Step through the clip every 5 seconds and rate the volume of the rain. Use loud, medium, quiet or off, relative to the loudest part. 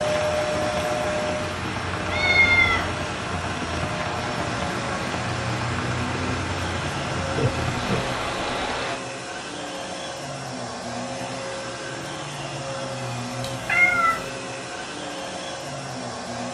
loud, loud, off, off.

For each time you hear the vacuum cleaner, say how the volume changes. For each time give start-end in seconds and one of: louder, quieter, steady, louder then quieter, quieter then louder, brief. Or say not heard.
0.0-16.4 steady.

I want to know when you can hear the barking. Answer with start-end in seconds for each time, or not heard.
not heard.